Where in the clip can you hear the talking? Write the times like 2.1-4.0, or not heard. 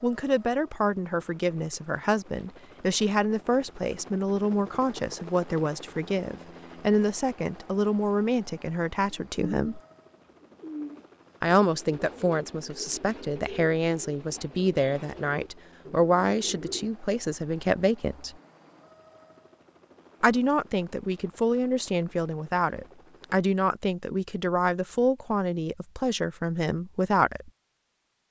0.0-9.8, 11.4-18.4, 20.2-27.5.